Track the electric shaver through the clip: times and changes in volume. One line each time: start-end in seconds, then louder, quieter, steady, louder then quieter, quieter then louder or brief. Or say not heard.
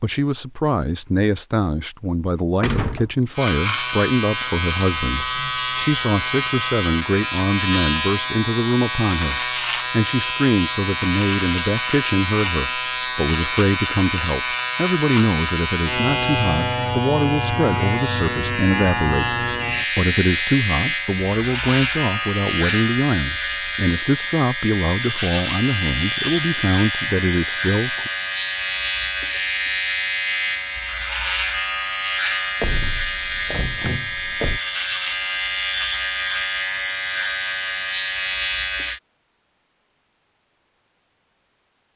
3.4-39.0 steady.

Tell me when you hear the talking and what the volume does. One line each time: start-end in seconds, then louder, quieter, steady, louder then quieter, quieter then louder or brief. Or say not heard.
0.0-28.1 steady.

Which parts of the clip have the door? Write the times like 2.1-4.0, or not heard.
2.6-3.1, 32.6-34.6.